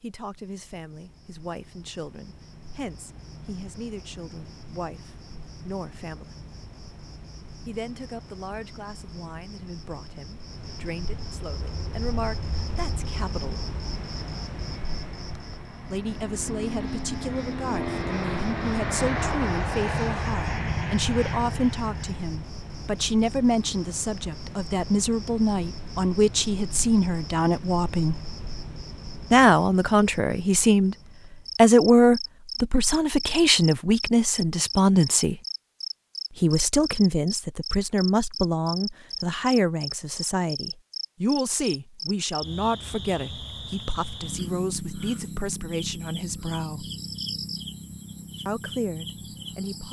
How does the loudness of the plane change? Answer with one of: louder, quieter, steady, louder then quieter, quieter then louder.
louder.